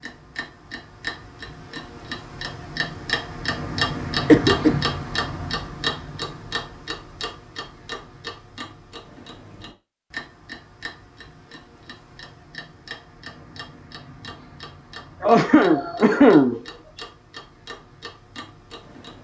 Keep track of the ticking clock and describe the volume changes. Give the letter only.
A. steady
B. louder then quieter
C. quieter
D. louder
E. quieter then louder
C.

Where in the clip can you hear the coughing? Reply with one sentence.
The coughing can be heard from 4.2 to 4.9 s and from 15.2 to 16.6 s.